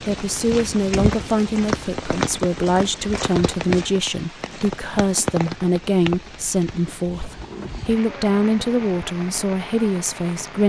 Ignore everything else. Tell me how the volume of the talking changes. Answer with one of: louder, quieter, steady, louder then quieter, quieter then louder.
steady.